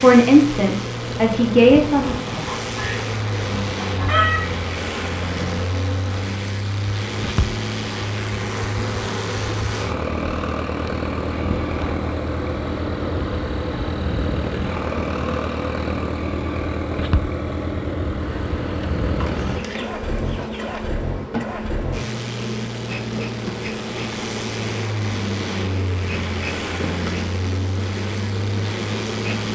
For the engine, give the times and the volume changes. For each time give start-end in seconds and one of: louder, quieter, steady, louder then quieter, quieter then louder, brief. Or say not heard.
0.0-29.4 steady.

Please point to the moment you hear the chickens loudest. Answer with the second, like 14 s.
4 s.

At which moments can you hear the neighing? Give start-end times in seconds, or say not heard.
not heard.